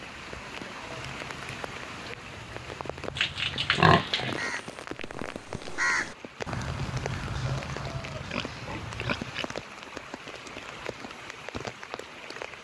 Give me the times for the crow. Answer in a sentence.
The crow can be heard from 0.8 to 9.2 s.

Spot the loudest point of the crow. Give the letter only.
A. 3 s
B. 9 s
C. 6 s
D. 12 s
C.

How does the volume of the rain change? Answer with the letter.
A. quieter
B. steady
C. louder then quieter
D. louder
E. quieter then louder
B.